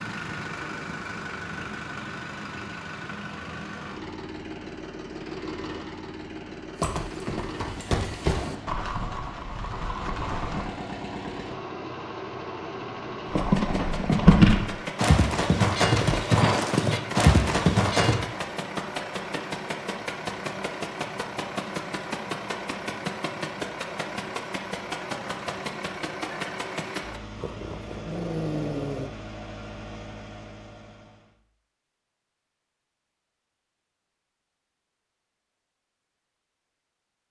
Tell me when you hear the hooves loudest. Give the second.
14 s.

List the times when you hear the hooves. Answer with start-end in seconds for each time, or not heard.
6.8-10.7, 13.3-18.1.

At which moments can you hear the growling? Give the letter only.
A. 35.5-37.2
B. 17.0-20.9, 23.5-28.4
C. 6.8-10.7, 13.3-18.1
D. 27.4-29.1
D.